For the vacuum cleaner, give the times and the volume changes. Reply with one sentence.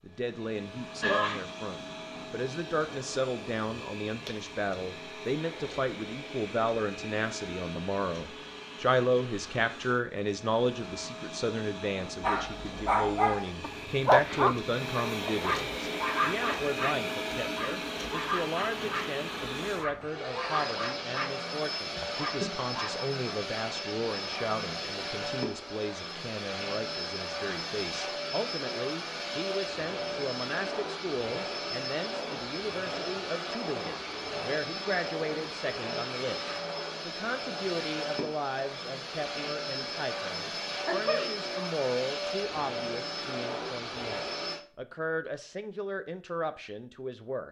You can hear the vacuum cleaner from 0.0 to 44.6 s, getting louder.